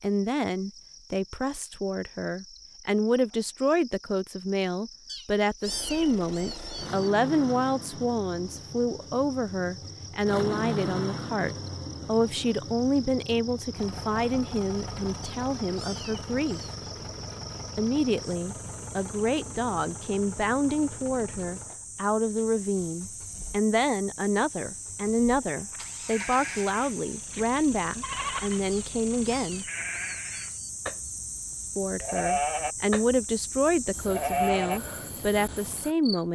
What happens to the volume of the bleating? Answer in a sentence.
The loudness of the bleating goes up.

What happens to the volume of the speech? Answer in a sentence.
The volume of the speech stays about the same.